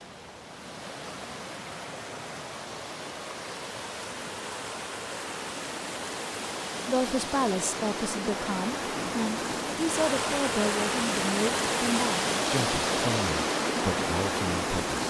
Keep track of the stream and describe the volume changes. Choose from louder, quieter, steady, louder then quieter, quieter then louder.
louder.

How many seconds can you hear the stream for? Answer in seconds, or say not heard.
15 s.